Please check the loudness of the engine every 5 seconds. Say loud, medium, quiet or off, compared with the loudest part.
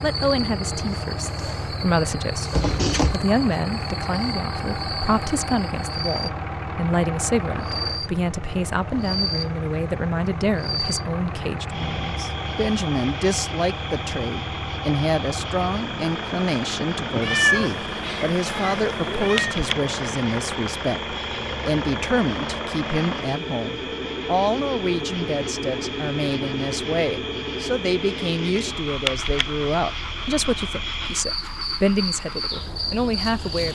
loud, loud, loud, loud, loud, loud, medium.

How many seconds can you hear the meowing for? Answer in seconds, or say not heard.
3 s.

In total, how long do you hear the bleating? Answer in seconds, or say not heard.
not heard.